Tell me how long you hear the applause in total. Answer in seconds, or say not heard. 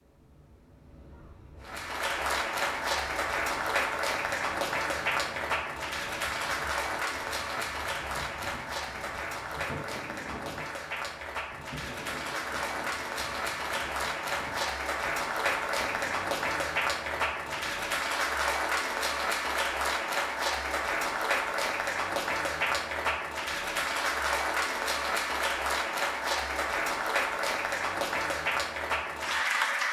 28 s.